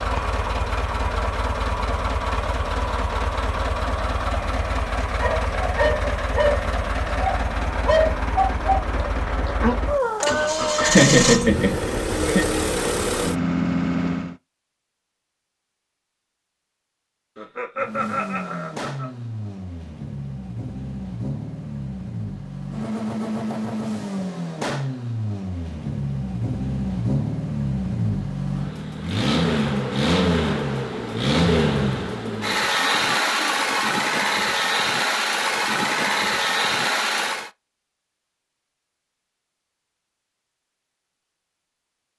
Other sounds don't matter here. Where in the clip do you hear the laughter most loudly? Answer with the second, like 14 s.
11 s.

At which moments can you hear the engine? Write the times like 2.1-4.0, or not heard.
0.0-14.3, 17.8-37.5.